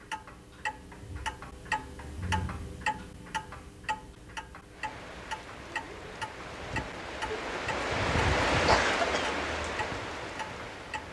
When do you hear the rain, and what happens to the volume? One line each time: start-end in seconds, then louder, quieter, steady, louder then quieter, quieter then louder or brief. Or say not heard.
4.7-11.0 louder then quieter.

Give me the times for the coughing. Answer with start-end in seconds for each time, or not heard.
8.7-9.4.